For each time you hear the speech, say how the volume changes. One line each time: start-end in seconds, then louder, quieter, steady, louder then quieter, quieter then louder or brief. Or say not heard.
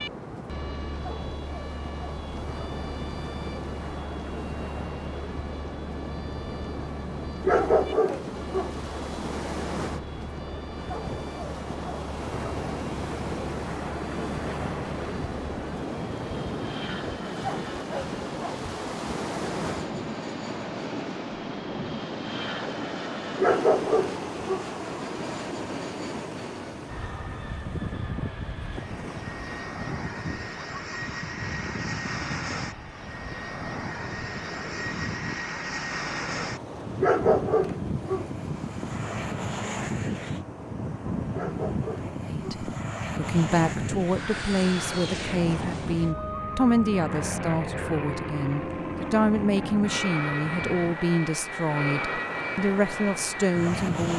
42.2-54.1 steady.